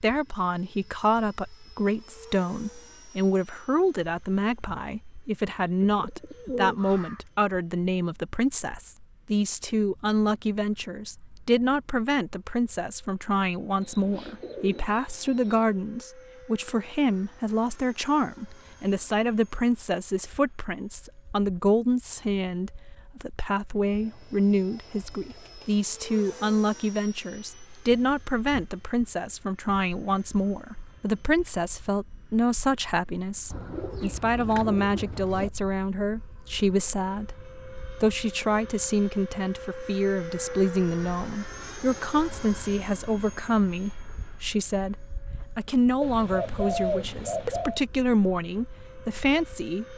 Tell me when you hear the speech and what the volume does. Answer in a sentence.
You can hear the speech from 0.0 to 49.9 s, at a steady volume.